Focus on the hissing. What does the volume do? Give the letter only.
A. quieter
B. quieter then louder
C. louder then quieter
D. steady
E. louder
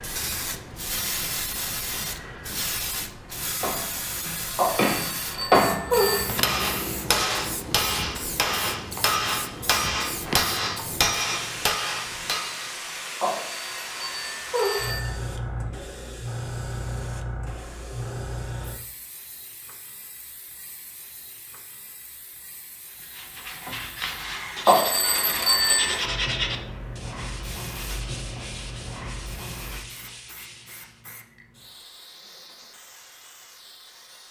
A.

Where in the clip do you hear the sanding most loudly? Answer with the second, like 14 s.
26 s.